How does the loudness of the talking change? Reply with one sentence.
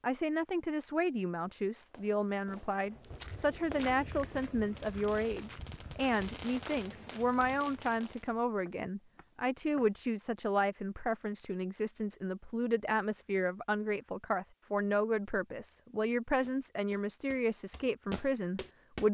The loudness of the talking stays about the same.